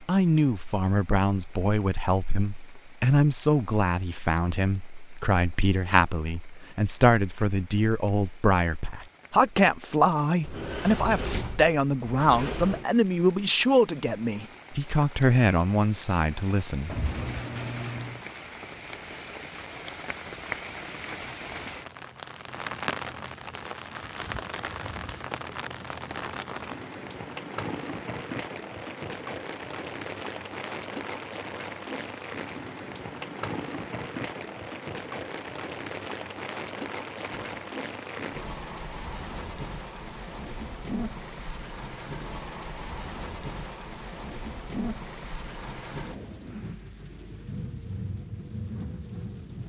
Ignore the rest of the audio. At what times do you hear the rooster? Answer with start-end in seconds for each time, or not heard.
not heard.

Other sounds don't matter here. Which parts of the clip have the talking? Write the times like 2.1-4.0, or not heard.
0.0-16.9.